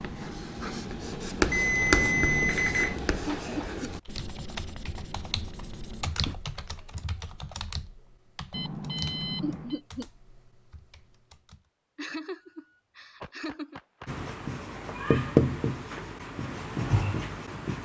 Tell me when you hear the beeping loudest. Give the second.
2 s.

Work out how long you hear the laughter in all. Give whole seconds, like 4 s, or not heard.
3 s.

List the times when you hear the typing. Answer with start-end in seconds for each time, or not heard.
3.8-11.7.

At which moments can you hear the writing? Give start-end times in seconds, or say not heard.
0.0-6.3, 14.1-17.7.